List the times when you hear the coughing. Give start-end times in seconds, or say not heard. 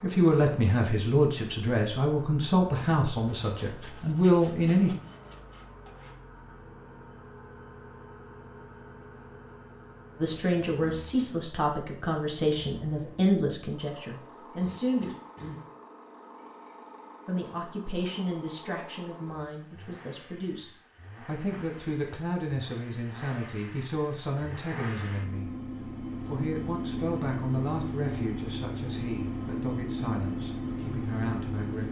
14.6-15.6.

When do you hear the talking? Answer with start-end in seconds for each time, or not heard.
0.0-4.9, 10.2-15.2, 17.2-31.8.